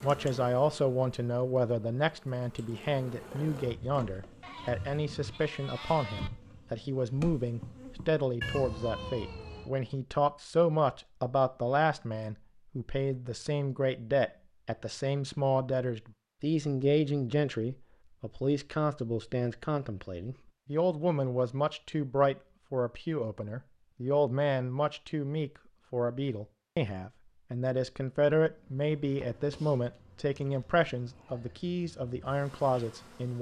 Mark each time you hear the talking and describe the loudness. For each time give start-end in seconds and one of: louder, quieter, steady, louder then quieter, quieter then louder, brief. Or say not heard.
0.0-33.3 steady.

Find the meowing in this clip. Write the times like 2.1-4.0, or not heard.
8.4-9.7.